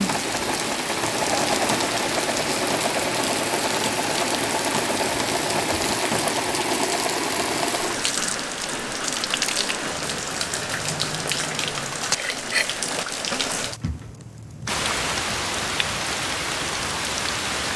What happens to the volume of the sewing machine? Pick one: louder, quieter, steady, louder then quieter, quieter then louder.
steady.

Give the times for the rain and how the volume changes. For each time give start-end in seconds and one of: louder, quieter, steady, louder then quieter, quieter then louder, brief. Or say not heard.
0.0-17.7 steady.